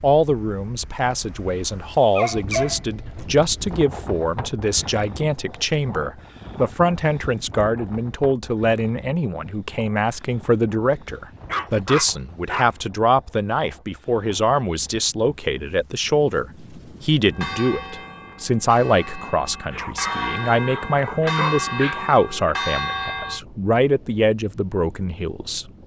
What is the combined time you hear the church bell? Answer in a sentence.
The church bell can be heard for 6 seconds in total.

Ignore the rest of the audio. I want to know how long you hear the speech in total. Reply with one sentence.
The speech can be heard for 26 seconds in total.